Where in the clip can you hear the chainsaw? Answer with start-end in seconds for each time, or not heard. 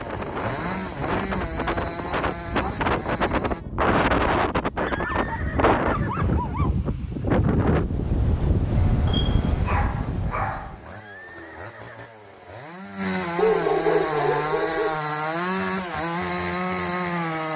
0.0-3.6, 8.8-17.5.